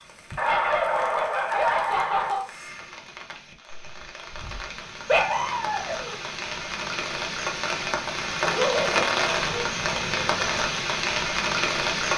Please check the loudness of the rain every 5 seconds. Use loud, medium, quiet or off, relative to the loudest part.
quiet, loud, loud.